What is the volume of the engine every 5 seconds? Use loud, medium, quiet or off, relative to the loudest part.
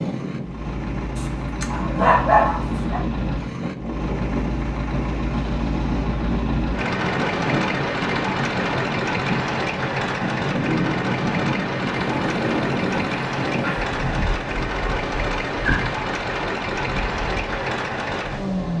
medium, loud, loud, loud.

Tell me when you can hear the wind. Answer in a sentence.
You can hear the wind from 0.0 to 18.7 s.